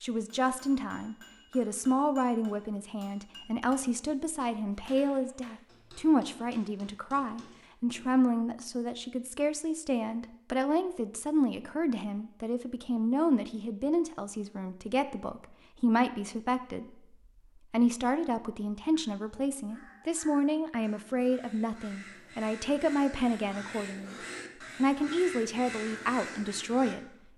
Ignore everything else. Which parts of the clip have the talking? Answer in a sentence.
You can hear the talking from 0.0 to 16.9 s, from 17.7 to 24.1 s and from 24.8 to 27.1 s.